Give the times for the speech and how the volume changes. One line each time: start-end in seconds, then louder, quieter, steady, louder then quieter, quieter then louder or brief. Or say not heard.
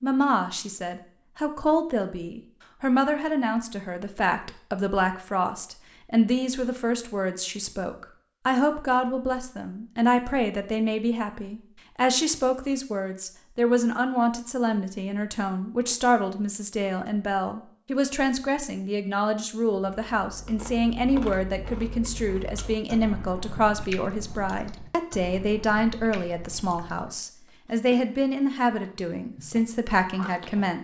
0.0-30.7 steady.